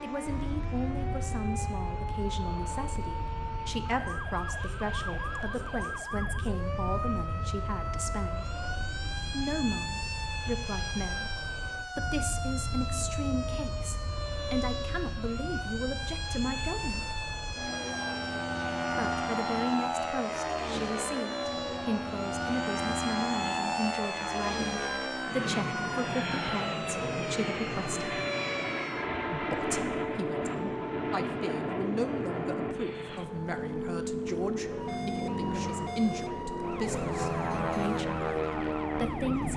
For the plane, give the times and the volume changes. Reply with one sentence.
You can hear the plane from 0.0 to 39.5 s, getting louder.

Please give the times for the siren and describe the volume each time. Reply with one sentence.
The siren can be heard from 0.0 to 39.5 s, at a steady volume.